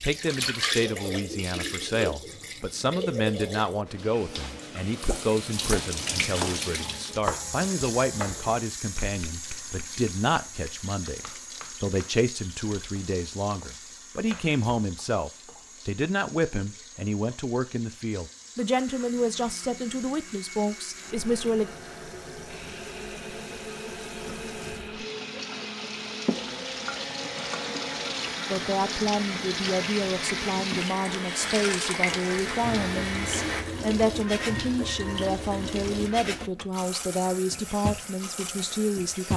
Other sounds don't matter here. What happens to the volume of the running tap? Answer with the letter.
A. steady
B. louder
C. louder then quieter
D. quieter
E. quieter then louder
E.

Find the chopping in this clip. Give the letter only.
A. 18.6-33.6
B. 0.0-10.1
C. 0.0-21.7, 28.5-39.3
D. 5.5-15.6
D.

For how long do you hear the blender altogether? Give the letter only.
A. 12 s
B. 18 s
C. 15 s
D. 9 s
C.